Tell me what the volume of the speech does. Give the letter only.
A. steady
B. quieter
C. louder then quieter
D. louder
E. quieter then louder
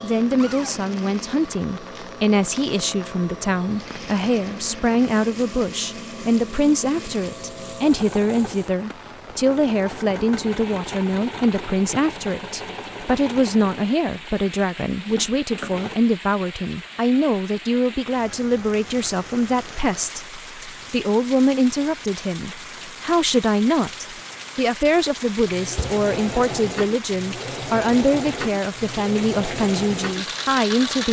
A.